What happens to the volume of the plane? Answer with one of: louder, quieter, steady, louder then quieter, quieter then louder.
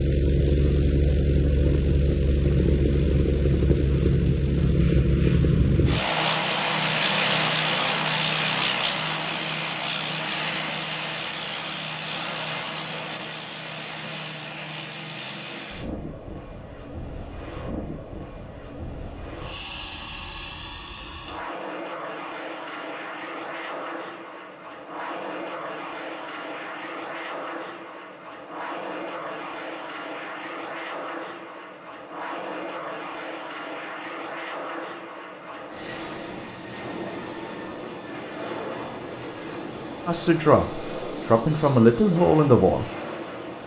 quieter.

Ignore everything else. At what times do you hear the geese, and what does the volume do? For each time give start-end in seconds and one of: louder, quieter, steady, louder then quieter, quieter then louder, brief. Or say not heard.
not heard.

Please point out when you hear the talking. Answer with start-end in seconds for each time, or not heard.
40.0-42.9.